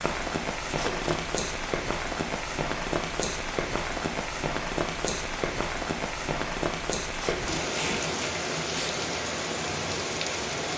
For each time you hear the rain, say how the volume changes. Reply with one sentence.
You can hear the rain from 0.0 to 10.7 s, at a steady volume.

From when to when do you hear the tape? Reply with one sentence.
The tape can be heard from 0.7 to 1.4 s and from 7.1 to 8.9 s.